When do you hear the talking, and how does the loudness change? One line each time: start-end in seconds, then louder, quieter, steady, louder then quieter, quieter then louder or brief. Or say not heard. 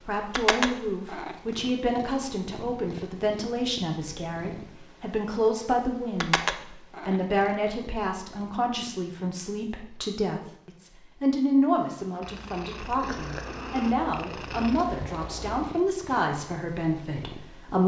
0.1-17.8 steady.